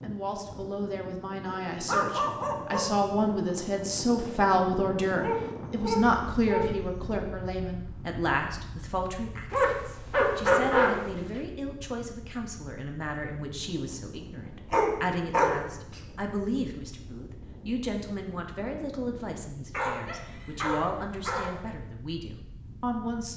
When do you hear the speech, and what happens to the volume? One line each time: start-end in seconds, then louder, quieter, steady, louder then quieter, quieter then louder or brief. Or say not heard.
0.0-23.3 quieter.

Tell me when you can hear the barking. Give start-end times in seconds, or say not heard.
1.9-2.9, 5.2-7.2, 9.5-10.9, 14.7-15.6, 19.7-21.6.